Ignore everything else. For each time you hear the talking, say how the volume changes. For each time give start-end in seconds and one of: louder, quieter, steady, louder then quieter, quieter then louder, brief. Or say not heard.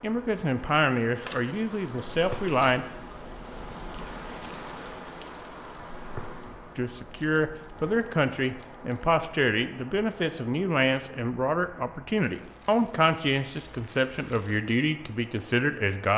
0.0-2.9 brief
6.8-16.1 steady.